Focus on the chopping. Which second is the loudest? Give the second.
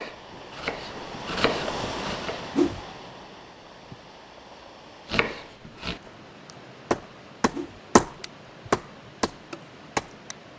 8 s.